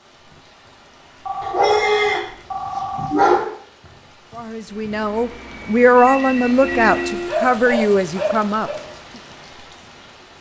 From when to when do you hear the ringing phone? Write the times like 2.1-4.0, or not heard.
1.2-3.1, 6.0-7.3.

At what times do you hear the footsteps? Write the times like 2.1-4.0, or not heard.
not heard.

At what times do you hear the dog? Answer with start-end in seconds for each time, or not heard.
1.4-2.2, 3.0-3.4, 7.2-8.8.